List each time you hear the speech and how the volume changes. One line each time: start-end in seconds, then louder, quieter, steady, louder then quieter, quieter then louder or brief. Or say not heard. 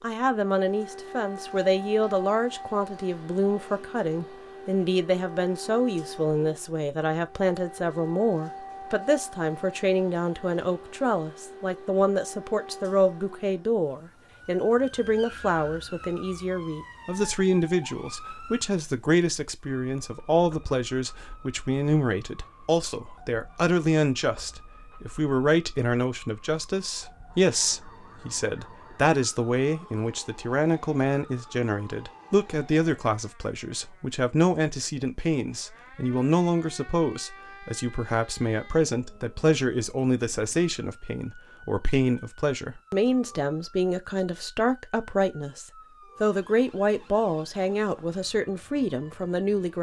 0.0-49.7 steady.